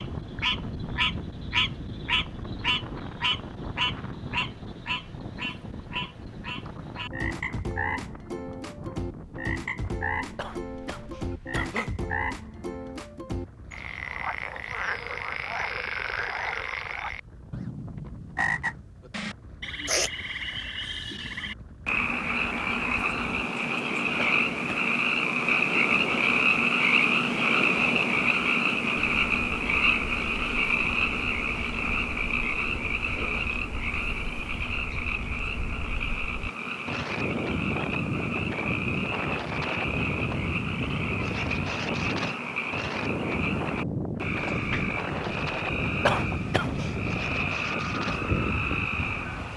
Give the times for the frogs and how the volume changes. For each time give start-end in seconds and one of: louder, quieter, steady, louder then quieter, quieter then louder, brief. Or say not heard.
0.0-49.5 louder then quieter.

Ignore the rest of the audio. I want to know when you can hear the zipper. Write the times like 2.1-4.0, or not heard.
not heard.